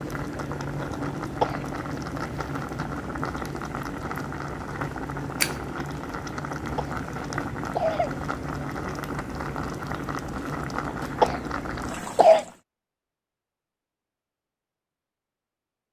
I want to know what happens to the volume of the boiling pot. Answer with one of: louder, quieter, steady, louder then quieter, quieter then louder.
steady.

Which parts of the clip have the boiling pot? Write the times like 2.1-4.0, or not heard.
0.0-12.6.